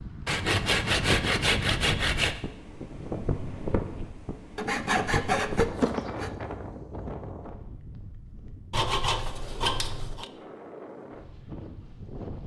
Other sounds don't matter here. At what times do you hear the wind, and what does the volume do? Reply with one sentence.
The wind can be heard from 0.0 to 12.4 s, getting quieter.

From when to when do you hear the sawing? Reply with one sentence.
You can hear the sawing from 0.2 to 2.4 s, from 4.5 to 6.3 s and from 8.7 to 10.2 s.